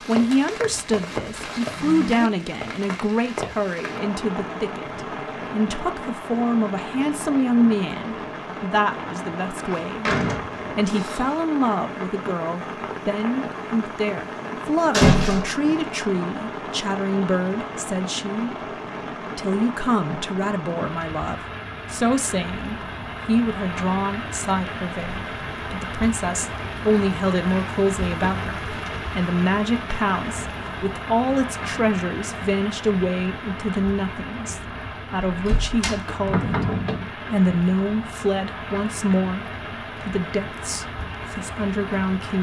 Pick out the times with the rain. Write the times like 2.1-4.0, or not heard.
0.0-42.3.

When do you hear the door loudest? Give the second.
15 s.